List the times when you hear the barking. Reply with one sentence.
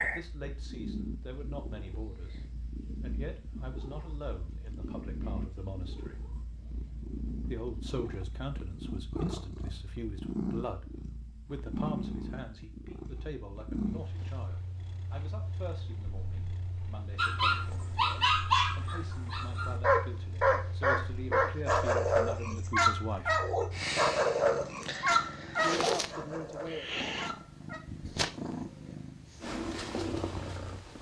The barking can be heard from 17.1 to 27.8 s.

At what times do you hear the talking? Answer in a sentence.
The talking can be heard from 0.0 to 6.3 s, from 7.4 to 10.8 s, from 11.4 to 23.4 s and from 25.6 to 26.9 s.